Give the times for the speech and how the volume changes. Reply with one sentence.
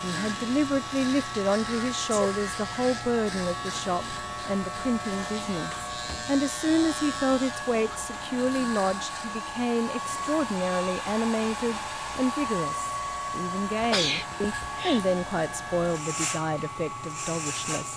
The speech can be heard from 0.0 to 17.9 s, at a steady volume.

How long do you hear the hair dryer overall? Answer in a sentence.
The hair dryer can be heard for 18 seconds in total.